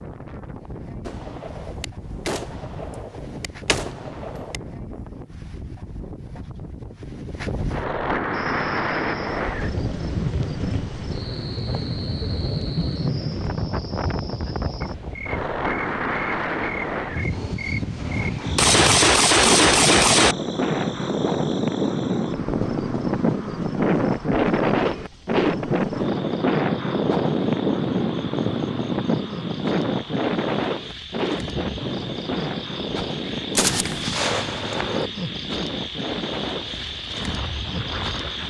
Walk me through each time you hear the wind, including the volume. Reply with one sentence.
The wind can be heard from 0.0 to 38.4 s, getting louder then quieter.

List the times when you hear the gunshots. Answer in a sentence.
You can hear the gunshots from 1.1 to 4.6 s, from 18.6 to 20.4 s and from 33.5 to 35.1 s.